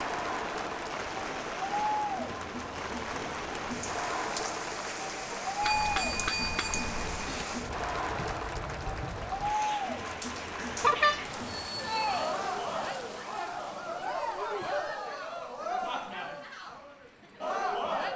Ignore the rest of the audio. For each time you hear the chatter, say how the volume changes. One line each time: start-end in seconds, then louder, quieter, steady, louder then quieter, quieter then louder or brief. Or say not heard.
0.0-18.1 steady.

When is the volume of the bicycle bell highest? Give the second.
11 s.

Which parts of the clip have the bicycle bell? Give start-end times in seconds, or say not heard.
5.6-7.5, 10.8-12.3.